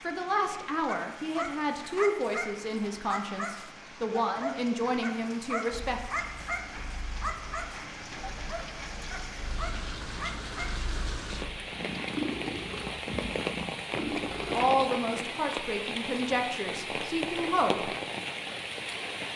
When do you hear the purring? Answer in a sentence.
You can hear the purring from 5.7 to 14.8 s.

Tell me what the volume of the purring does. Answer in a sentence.
The loudness of the purring goes up.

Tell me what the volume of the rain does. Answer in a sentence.
The loudness of the rain goes up.